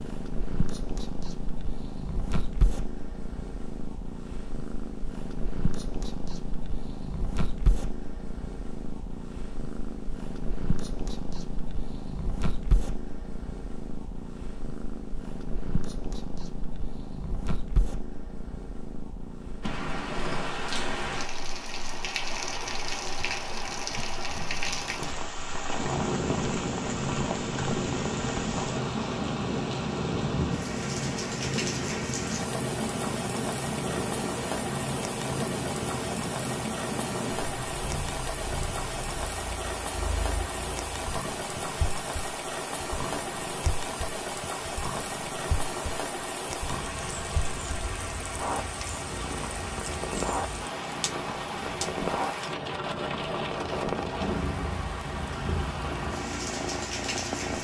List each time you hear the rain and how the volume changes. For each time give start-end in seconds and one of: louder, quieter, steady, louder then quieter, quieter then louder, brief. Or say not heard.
19.6-57.5 steady.